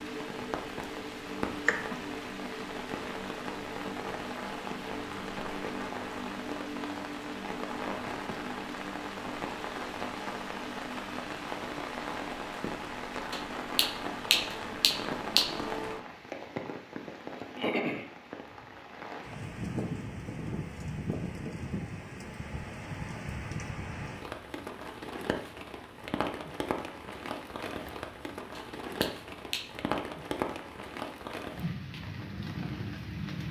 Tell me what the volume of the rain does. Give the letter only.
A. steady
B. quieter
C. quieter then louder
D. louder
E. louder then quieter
A.